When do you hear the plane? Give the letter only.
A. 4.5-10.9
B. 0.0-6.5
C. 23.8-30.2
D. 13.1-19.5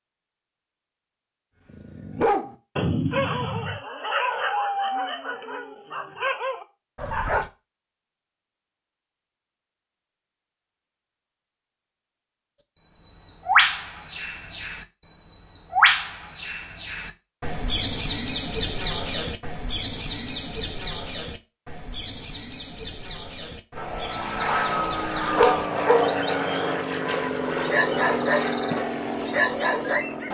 C.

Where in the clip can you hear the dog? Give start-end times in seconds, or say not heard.
1.7-7.5, 24.1-30.1.